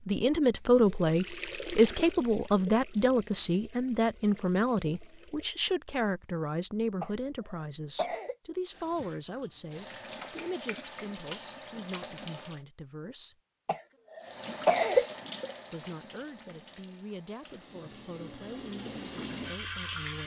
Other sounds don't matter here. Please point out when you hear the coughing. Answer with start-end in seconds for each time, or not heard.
7.0-8.3, 13.7-15.1.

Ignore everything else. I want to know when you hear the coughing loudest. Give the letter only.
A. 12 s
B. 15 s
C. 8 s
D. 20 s
B.